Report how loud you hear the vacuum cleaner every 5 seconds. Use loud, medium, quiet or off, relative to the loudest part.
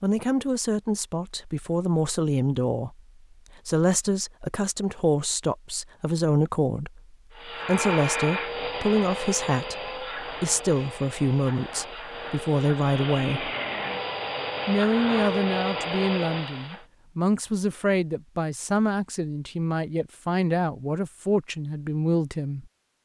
off, loud, loud, loud, off.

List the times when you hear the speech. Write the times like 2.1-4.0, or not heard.
0.0-3.0, 3.6-13.5, 14.7-22.7.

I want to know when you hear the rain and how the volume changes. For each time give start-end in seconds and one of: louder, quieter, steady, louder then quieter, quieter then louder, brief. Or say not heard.
not heard.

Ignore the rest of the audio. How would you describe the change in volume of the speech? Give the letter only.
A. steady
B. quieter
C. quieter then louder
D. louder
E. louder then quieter
A.